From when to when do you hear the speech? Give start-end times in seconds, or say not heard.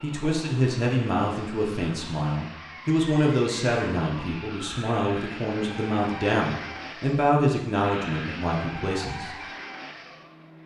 0.0-9.3.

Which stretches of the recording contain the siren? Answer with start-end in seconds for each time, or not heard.
not heard.